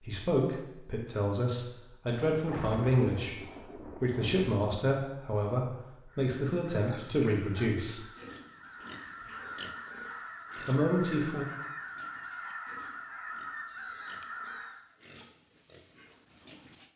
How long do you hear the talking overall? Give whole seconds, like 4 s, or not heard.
9 s.